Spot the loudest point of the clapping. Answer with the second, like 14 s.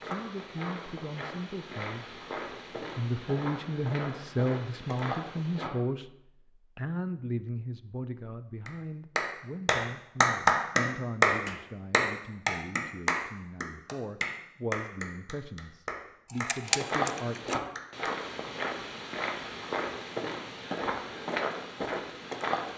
10 s.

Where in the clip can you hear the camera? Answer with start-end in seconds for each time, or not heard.
16.2-17.6.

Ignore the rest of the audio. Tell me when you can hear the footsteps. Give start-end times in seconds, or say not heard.
0.0-5.7, 16.6-22.7.